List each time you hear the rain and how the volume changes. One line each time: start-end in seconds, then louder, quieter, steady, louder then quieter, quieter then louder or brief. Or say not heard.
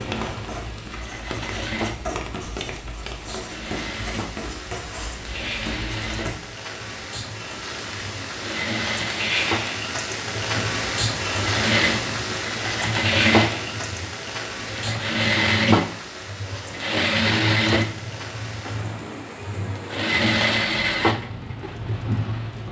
0.0-22.6 louder then quieter.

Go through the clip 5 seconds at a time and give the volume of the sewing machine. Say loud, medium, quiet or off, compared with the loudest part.
medium, medium, loud, loud, loud.